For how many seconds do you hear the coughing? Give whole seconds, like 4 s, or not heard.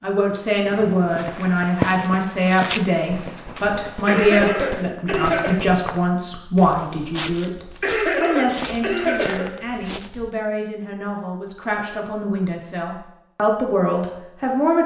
3 s.